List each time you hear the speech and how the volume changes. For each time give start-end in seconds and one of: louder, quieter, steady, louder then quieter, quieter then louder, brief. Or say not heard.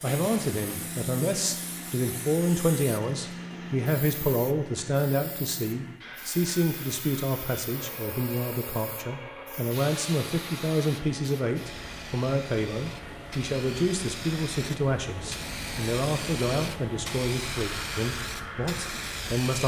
0.0-19.6 steady.